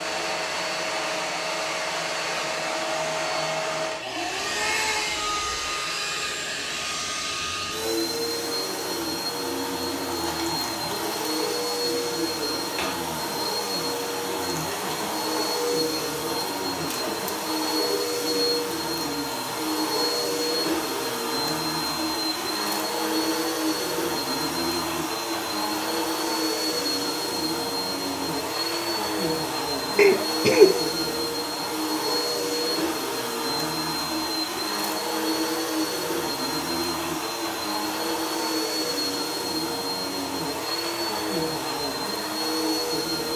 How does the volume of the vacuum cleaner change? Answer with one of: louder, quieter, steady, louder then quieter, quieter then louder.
steady.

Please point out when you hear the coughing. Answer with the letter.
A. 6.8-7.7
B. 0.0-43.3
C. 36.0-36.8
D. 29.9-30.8
D.